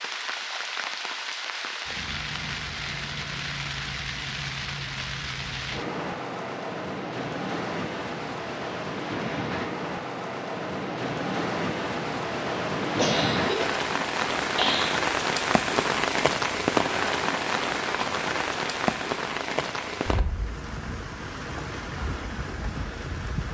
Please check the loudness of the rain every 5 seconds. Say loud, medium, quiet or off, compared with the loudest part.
medium, medium, loud, loud, medium.